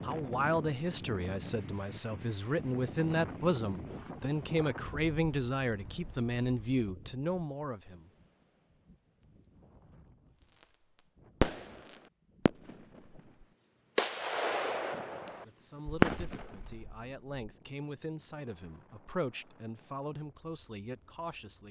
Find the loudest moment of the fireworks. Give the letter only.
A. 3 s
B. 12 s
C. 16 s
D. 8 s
C.